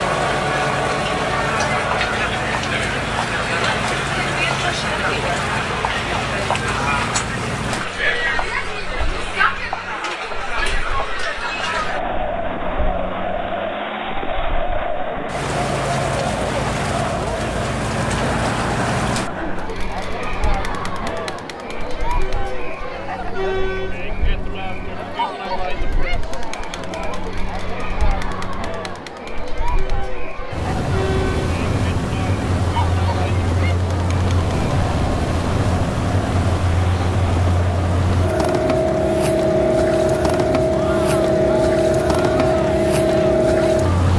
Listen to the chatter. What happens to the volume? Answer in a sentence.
The loudness of the chatter goes down.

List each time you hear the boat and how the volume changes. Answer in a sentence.
The boat can be heard from 0.0 to 44.1 s, getting louder.